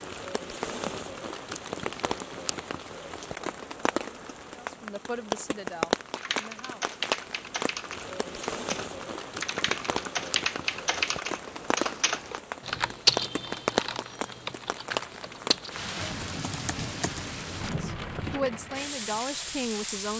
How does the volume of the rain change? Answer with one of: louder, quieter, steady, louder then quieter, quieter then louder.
steady.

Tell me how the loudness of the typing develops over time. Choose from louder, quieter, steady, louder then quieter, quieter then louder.
louder then quieter.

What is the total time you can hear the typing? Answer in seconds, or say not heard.
12 s.